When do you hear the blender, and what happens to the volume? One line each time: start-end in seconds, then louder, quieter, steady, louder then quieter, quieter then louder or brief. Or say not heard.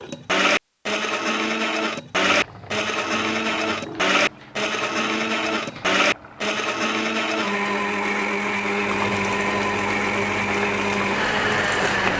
0.0-12.1 steady.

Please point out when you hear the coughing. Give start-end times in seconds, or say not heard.
not heard.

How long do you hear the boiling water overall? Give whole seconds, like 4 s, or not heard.
10 s.